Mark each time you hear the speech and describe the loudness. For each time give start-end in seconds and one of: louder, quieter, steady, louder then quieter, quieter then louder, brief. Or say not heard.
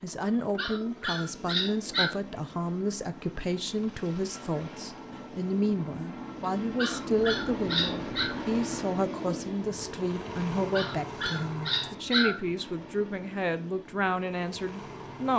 0.0-15.3 steady.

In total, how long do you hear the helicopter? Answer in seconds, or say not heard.
15 s.